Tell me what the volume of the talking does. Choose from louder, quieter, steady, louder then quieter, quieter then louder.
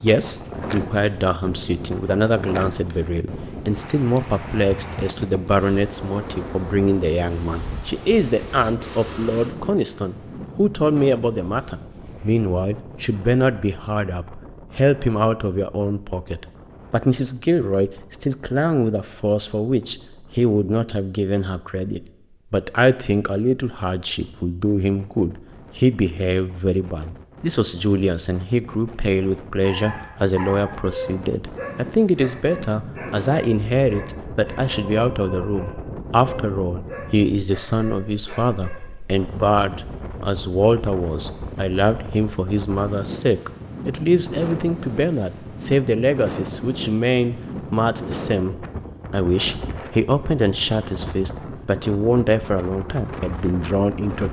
steady.